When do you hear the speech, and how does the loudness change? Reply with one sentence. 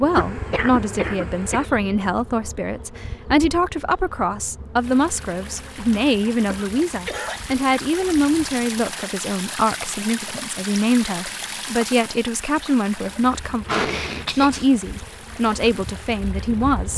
The speech can be heard from 0.0 to 16.9 s, at a steady volume.